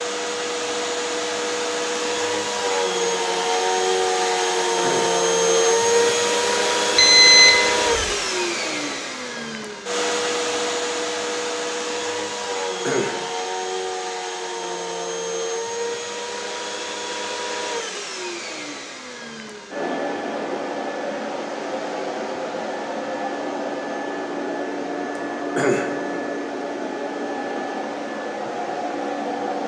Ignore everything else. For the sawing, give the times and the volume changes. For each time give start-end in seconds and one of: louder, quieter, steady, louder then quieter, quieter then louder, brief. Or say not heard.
not heard.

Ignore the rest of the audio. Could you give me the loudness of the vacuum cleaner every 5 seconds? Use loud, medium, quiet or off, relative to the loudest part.
loud, loud, medium, medium, medium, medium.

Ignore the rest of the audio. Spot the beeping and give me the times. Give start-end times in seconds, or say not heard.
7.0-8.1.